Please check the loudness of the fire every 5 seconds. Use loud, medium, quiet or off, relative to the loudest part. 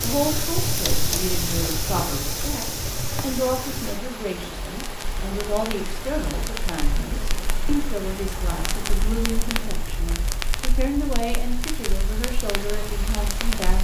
loud, medium, medium.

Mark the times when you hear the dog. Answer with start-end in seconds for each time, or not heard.
not heard.